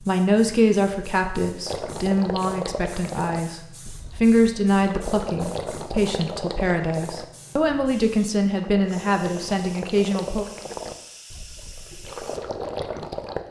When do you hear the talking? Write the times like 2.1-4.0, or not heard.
0.0-10.4.